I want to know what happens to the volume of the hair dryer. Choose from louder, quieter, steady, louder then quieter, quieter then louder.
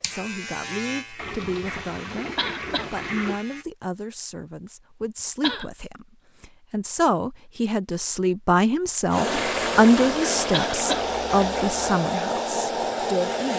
steady.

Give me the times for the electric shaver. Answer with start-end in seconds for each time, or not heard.
0.0-3.6.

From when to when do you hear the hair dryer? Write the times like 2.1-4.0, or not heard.
9.1-13.5.